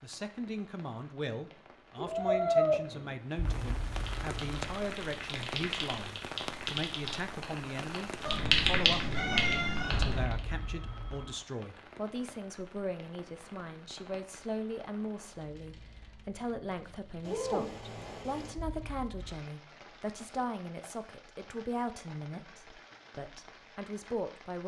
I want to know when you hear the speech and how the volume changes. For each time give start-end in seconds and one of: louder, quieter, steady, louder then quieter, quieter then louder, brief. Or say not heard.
0.0-24.6 steady.